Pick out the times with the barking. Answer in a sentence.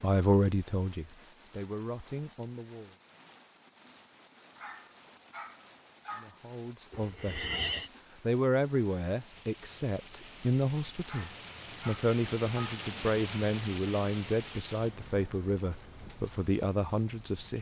You can hear the barking from 4.5 to 6.4 s and from 11.1 to 12.8 s.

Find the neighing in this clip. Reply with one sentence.
The neighing can be heard from 6.9 to 7.9 s.